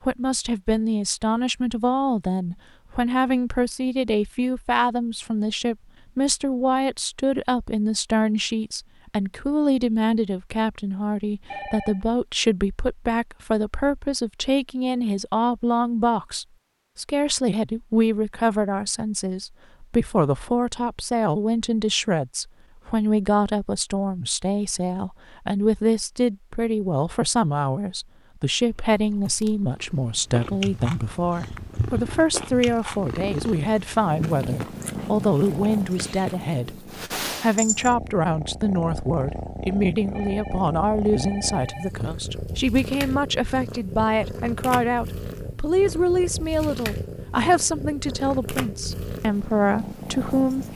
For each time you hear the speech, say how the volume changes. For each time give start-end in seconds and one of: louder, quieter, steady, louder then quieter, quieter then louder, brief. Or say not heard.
0.0-50.7 steady.